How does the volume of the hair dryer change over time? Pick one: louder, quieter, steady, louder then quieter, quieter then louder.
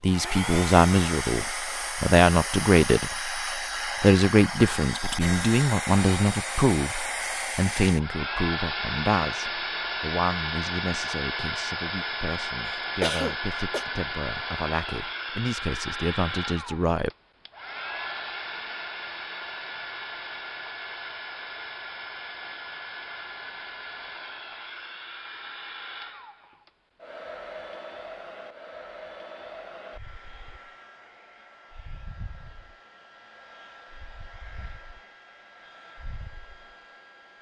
quieter.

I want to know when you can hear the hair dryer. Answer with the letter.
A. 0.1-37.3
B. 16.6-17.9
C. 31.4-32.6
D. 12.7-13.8
A.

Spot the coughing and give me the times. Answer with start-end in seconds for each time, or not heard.
12.7-13.8.